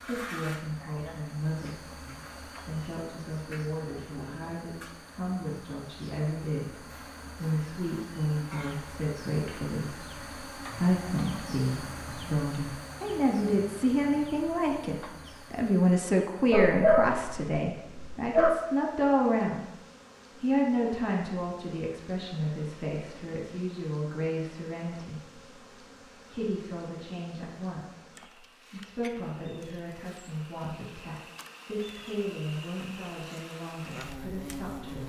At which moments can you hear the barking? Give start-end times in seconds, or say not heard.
16.5-18.5.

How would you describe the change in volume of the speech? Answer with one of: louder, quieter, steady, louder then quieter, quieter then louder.
louder then quieter.